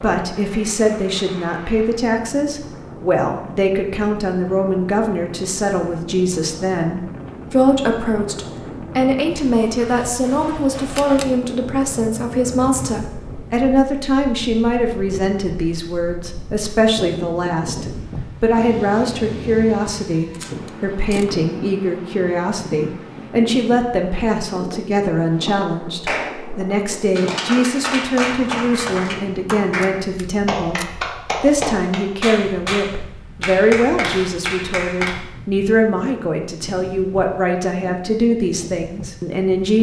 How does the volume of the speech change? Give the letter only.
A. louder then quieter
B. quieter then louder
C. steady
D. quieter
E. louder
C.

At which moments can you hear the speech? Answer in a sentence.
You can hear the speech from 0.0 to 39.7 s.